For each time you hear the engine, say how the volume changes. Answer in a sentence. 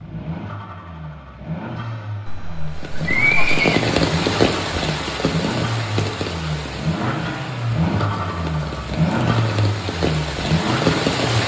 The engine can be heard from 0.0 to 11.4 s, getting louder.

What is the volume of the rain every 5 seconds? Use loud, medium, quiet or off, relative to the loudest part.
loud, medium, loud.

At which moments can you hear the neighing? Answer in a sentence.
You can hear the neighing from 2.2 to 3.8 s.